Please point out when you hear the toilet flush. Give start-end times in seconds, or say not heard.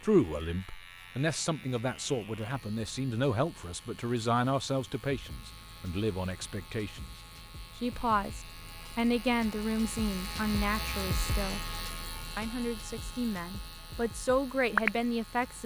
not heard.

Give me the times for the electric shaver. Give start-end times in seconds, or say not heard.
0.0-15.6.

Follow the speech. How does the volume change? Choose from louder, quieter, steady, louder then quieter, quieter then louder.
steady.